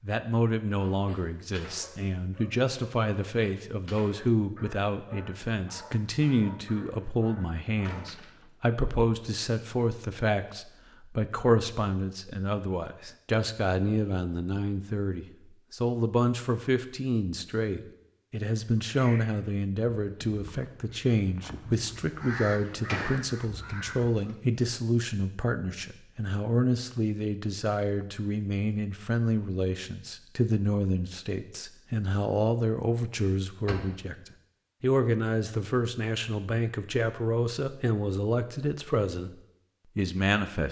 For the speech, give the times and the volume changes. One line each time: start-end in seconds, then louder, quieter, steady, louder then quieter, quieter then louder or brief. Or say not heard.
0.0-39.4 steady
40.0-40.6 brief.